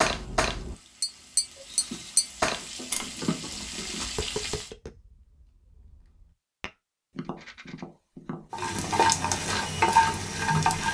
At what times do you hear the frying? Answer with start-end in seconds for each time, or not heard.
0.0-4.7, 8.5-10.9.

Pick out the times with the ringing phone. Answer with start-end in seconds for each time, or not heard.
not heard.